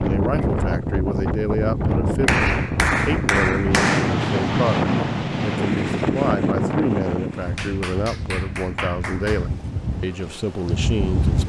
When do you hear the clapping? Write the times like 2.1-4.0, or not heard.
2.2-4.2, 7.5-9.5.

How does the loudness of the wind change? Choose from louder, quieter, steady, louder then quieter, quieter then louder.
quieter.